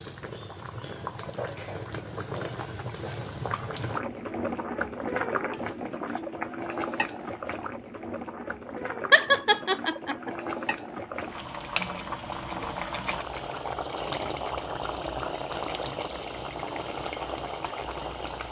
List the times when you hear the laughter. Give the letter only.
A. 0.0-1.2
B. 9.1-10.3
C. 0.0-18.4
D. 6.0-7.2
B.